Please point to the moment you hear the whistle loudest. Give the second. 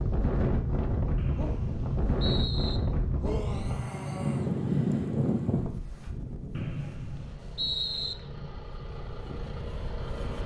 8 s.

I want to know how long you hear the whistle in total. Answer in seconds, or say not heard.
3 s.